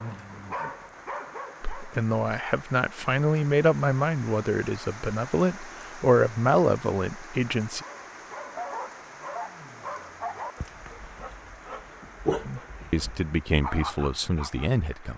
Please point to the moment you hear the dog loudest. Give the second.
12 s.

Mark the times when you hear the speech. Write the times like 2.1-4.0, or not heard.
1.6-7.8, 12.4-15.1.